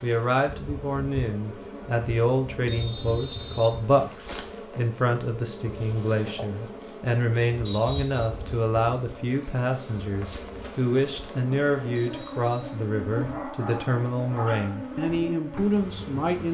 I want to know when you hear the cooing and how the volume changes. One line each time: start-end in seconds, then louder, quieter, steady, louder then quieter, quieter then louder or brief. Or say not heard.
not heard.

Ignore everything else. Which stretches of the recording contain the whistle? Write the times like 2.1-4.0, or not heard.
2.6-3.7, 7.7-8.2, 11.9-12.8.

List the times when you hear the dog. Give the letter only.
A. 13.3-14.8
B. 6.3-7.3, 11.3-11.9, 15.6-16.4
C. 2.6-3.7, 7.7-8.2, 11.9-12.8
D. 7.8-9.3
A.